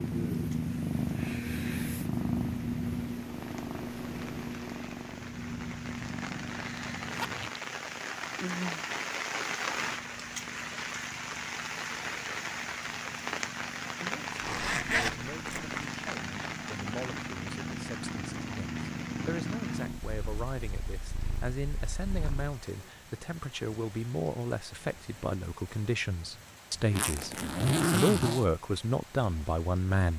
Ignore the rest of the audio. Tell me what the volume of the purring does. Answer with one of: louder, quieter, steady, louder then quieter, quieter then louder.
quieter then louder.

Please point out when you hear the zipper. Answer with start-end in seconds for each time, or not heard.
6.8-7.6, 14.4-15.8, 26.9-28.4.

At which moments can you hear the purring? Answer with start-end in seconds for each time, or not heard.
0.0-22.6.